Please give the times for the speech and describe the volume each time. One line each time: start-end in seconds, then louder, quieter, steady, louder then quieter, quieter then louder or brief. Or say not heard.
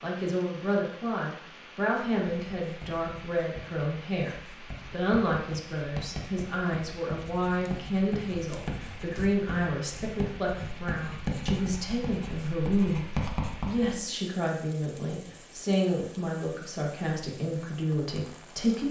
0.0-18.8 steady.